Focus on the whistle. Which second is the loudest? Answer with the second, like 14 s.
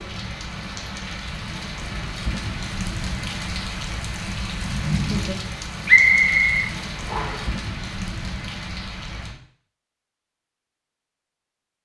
6 s.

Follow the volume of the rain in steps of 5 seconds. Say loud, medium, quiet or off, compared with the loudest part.
loud, loud, off.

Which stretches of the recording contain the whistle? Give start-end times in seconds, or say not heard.
5.8-7.5.